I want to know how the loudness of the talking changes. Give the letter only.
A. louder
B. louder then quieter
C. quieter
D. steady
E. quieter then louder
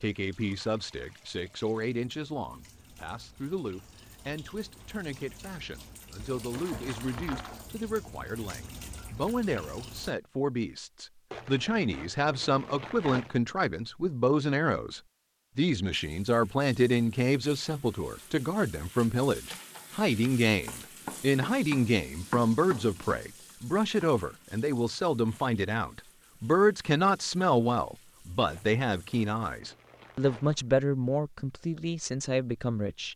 A.